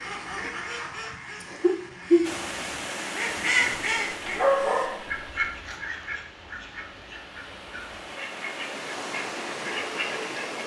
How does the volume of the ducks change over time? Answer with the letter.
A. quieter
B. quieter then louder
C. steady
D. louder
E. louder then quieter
B.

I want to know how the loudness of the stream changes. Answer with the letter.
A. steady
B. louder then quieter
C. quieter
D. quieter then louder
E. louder
D.